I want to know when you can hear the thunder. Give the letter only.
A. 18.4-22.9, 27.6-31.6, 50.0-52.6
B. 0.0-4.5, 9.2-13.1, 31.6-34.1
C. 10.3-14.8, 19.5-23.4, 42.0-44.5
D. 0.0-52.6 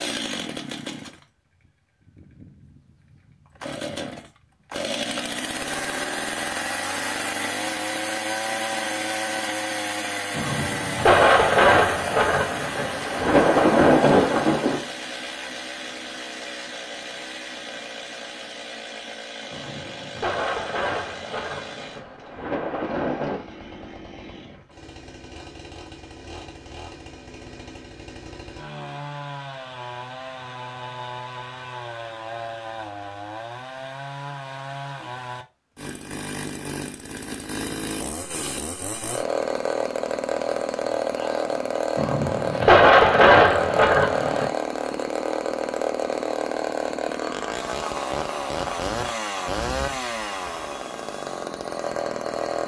C.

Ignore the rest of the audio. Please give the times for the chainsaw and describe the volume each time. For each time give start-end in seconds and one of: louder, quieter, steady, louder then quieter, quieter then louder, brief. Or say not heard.
0.0-52.6 quieter then louder.